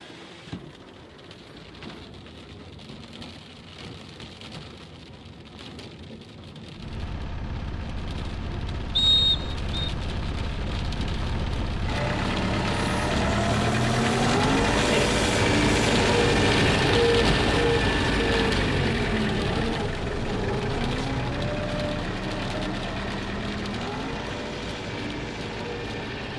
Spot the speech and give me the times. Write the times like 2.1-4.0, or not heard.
not heard.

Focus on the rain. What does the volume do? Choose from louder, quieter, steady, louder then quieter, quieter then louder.
louder then quieter.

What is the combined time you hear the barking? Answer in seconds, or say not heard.
not heard.